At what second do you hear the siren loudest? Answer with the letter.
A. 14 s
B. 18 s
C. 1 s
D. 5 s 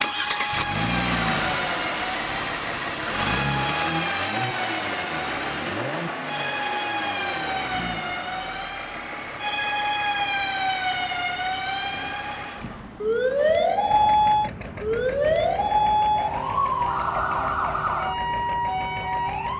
A.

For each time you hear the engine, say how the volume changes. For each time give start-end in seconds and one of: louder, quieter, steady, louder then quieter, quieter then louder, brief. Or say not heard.
0.0-19.5 quieter.